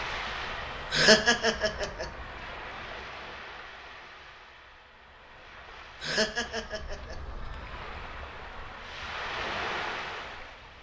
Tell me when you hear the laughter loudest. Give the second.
1 s.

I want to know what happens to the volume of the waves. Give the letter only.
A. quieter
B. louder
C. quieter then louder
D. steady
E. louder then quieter
C.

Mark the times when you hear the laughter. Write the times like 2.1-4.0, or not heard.
0.9-2.0, 6.0-7.2.